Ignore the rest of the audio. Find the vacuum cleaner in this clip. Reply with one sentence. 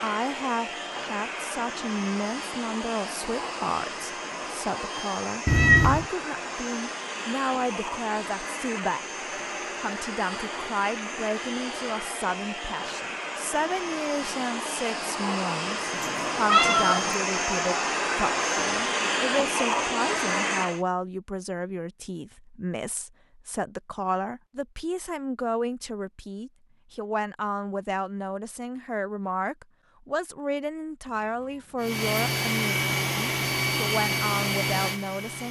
The vacuum cleaner can be heard from 0.0 to 20.8 s and from 31.8 to 35.4 s.